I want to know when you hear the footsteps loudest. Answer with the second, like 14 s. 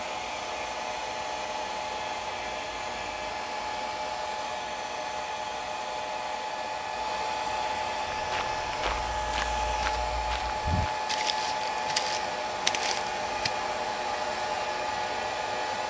13 s.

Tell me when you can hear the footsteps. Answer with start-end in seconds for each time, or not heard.
8.1-13.5.